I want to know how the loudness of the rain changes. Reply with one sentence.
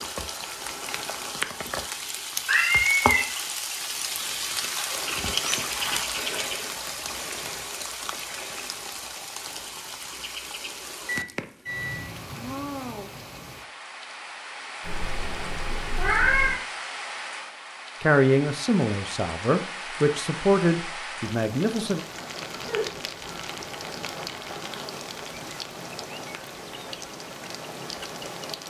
The volume of the rain goes down.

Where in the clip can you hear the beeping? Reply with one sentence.
You can hear the beeping from 11.1 to 12.0 s.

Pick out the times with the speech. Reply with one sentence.
You can hear the speech from 18.0 to 22.0 s.